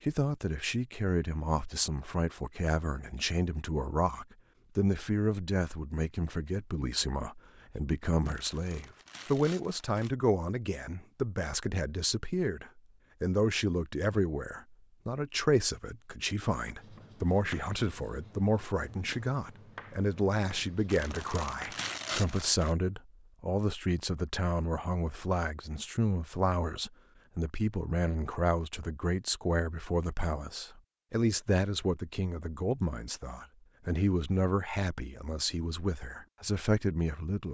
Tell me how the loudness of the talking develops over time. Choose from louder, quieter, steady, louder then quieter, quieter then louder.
steady.